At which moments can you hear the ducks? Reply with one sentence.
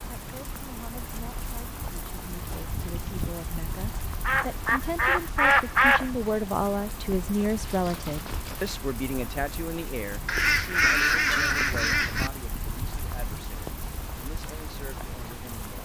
The ducks can be heard from 4.2 to 6.1 s and from 10.2 to 12.3 s.